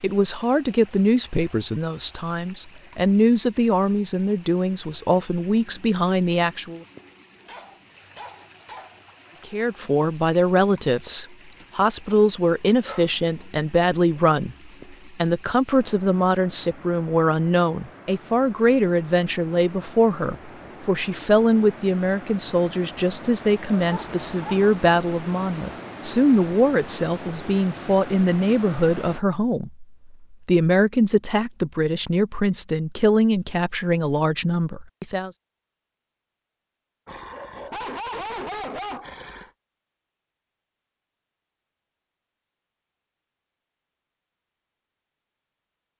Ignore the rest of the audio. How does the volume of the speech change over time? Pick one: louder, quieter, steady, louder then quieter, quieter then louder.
steady.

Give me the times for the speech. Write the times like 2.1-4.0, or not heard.
0.0-6.8, 9.4-35.3.